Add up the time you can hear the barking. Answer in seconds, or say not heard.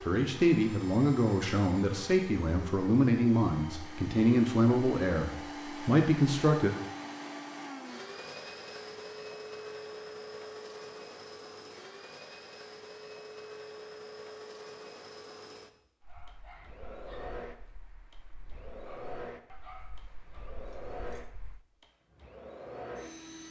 6 s.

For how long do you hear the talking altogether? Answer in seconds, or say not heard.
7 s.